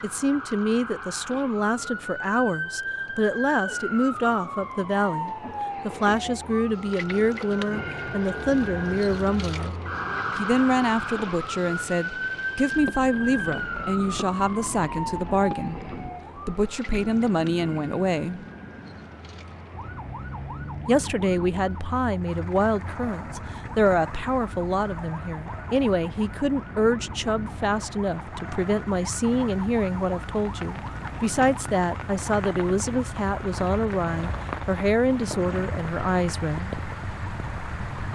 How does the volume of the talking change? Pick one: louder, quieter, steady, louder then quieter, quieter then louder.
steady.